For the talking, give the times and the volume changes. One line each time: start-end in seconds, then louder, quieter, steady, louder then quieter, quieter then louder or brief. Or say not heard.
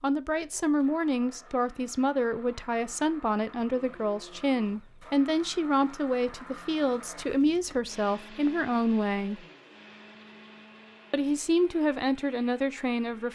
0.0-9.4 steady
11.1-13.3 brief.